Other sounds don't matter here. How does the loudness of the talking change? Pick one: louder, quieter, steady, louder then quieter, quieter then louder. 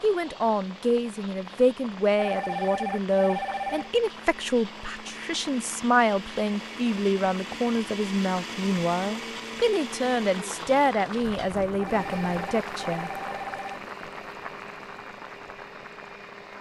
steady.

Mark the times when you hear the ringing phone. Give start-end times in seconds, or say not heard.
2.1-3.9, 11.8-13.8.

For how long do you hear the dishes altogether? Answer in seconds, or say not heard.
not heard.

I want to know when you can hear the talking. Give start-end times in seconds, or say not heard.
0.0-13.1.